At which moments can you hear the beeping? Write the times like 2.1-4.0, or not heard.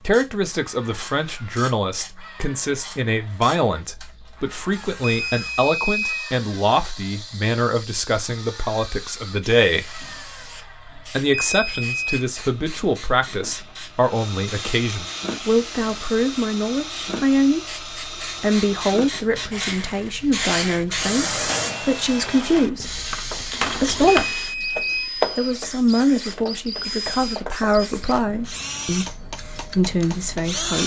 5.0-6.3, 11.3-12.2, 24.1-25.1.